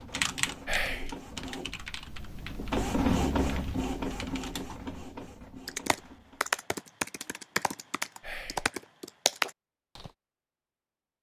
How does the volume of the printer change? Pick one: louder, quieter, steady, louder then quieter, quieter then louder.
louder then quieter.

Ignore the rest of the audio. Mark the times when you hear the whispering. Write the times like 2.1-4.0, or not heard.
0.7-1.1, 8.2-8.7.